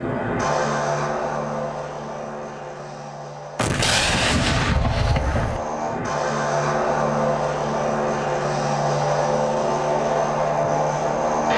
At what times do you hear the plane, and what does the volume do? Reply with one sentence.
You can hear the plane from 0.0 to 11.5 s, getting quieter then louder.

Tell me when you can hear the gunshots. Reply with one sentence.
The gunshots can be heard from 3.5 to 5.6 s.